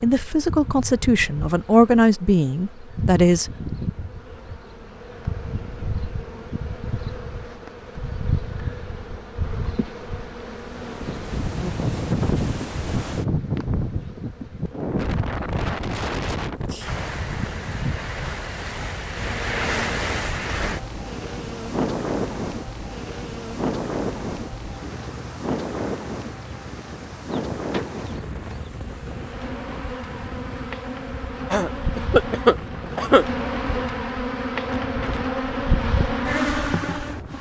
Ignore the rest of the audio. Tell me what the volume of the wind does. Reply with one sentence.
The loudness of the wind goes down.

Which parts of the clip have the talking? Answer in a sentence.
You can hear the talking from 0.0 to 3.5 s.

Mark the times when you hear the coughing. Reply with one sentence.
The coughing can be heard from 31.5 to 33.2 s.